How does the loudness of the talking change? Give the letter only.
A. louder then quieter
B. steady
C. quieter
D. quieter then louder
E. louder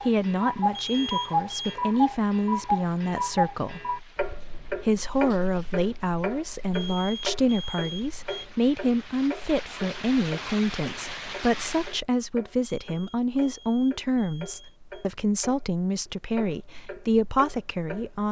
B.